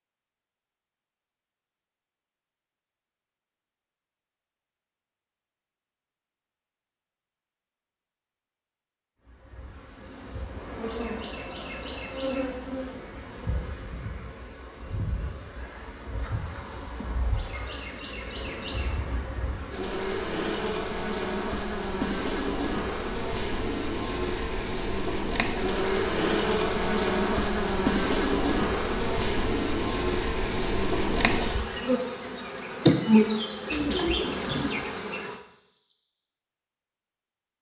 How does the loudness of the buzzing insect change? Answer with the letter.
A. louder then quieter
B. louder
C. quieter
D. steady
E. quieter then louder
B.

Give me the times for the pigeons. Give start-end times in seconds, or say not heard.
33.6-34.7.